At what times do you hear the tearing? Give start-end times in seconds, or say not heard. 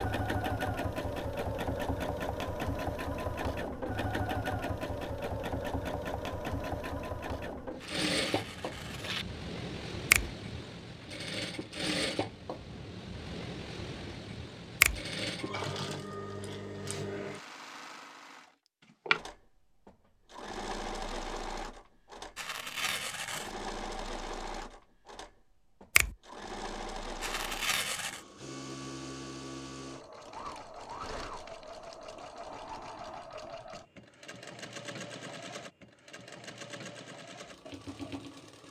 7.8-9.2, 22.4-23.6, 27.2-28.2.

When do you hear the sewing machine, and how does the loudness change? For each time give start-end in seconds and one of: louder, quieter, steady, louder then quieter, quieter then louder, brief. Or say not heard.
0.0-38.6 quieter.